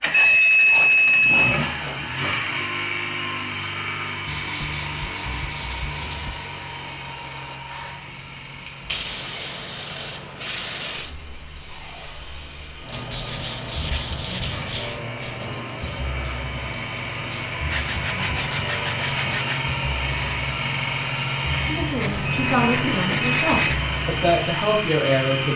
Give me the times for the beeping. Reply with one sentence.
You can hear the beeping from 0.1 to 1.6 s and from 22.2 to 23.6 s.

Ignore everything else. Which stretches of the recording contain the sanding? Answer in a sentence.
The sanding can be heard from 0.1 to 2.0 s, from 4.2 to 6.5 s, from 8.8 to 11.2 s, from 12.9 to 15.0 s, from 17.7 to 19.6 s and from 21.9 to 23.8 s.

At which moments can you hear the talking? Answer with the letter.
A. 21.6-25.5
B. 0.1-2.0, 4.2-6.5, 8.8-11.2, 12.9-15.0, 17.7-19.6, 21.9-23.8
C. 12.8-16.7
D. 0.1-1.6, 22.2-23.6
A.